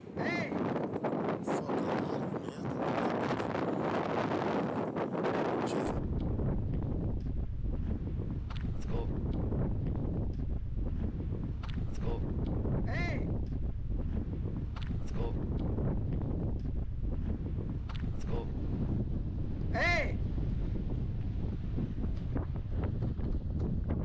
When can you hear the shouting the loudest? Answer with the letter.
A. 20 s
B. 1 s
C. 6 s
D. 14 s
A.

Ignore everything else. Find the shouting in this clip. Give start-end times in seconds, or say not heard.
0.1-0.7, 12.8-13.3, 19.7-20.2.